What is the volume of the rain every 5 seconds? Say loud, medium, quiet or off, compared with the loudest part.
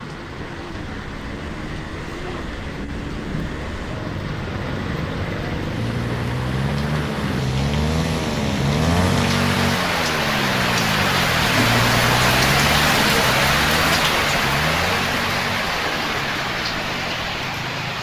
quiet, medium, loud, medium.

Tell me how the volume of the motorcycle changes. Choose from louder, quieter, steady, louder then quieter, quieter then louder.
louder then quieter.